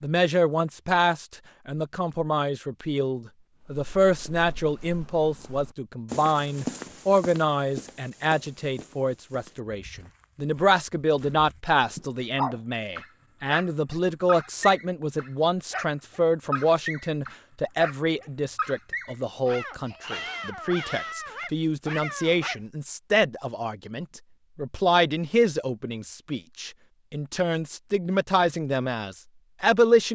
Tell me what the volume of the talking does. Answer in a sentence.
The volume of the talking stays about the same.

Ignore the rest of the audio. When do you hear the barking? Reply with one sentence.
The barking can be heard from 11.9 to 22.6 s.